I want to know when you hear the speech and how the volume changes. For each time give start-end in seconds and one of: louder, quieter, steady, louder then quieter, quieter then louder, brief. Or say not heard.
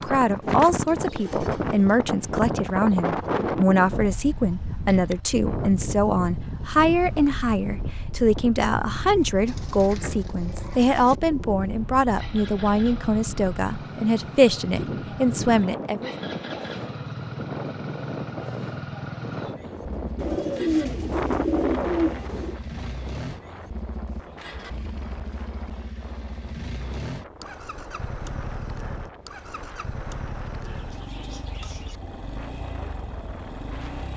0.0-16.1 steady.